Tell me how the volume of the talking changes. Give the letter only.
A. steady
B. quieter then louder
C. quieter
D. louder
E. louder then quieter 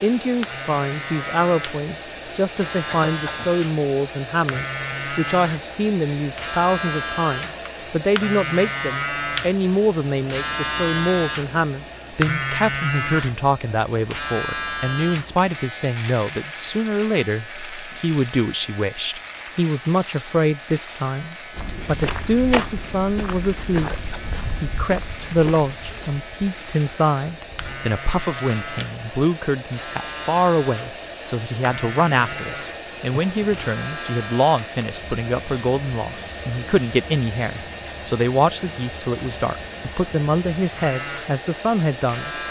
A.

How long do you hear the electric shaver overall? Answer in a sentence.
The electric shaver can be heard for 42 seconds in total.